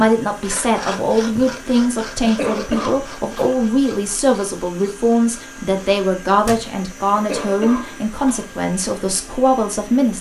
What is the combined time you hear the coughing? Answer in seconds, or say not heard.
3 s.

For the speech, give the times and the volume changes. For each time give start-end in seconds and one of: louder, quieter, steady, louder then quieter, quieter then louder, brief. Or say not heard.
0.0-10.1 steady.